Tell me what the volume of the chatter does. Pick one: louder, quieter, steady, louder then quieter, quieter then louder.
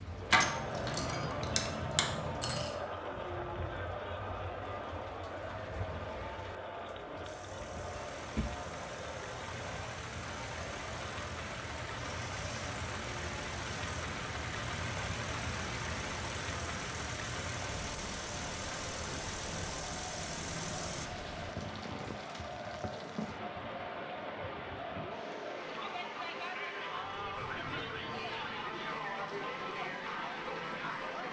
quieter then louder.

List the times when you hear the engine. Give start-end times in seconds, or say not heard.
7.2-21.1.